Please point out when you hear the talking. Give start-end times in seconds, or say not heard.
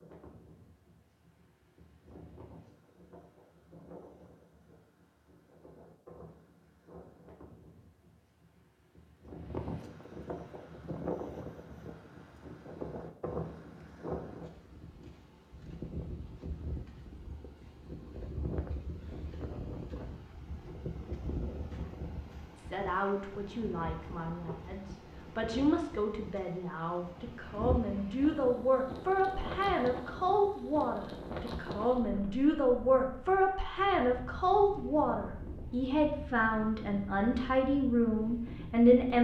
22.6-39.1.